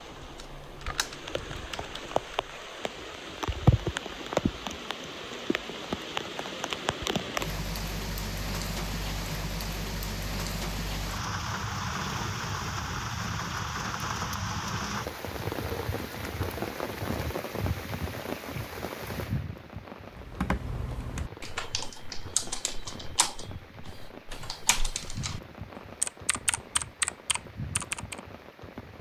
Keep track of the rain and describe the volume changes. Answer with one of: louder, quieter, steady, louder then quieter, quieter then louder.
quieter.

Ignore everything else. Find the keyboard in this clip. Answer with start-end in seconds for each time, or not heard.
0.0-2.8, 20.1-25.4, 26.0-28.2.